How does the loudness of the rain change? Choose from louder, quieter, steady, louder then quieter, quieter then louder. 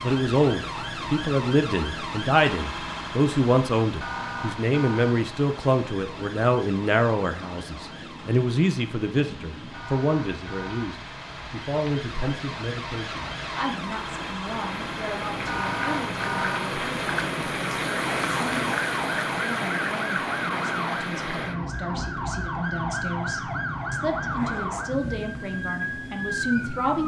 louder then quieter.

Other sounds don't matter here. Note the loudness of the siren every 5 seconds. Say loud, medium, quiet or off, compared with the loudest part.
loud, medium, medium, loud, loud, loud.